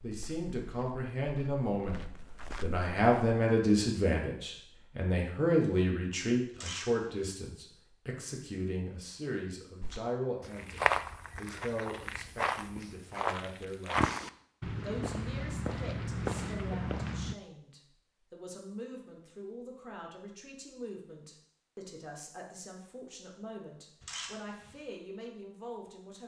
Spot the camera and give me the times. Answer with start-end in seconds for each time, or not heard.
6.5-7.3, 24.0-24.8.